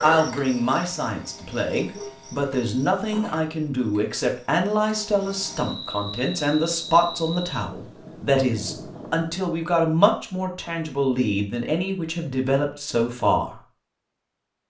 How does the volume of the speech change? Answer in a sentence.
The volume of the speech stays about the same.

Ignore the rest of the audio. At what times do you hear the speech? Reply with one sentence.
The speech can be heard from 0.0 to 13.6 s.